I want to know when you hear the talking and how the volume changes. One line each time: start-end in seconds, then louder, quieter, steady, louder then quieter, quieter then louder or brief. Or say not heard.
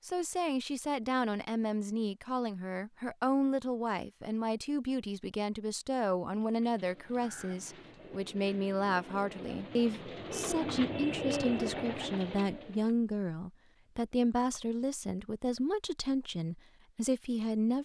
0.1-17.7 steady.